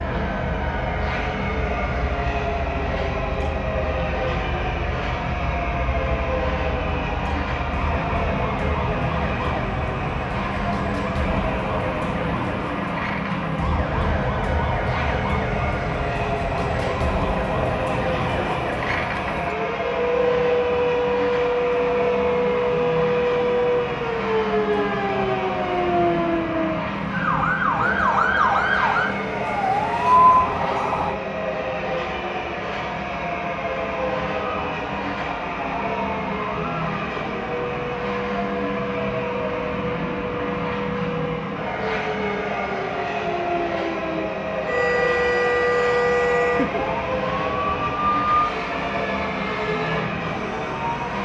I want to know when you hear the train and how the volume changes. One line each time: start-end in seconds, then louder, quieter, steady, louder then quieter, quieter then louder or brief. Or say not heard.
0.0-51.2 steady.